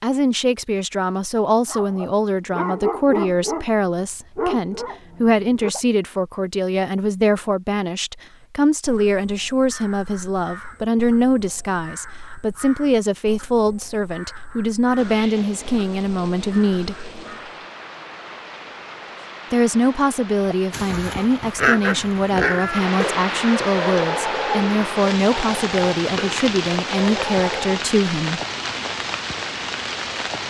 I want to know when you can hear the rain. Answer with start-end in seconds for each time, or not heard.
14.9-30.4.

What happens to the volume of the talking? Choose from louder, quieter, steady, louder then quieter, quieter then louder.
steady.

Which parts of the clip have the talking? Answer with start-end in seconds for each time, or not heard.
0.0-17.1, 19.5-28.4.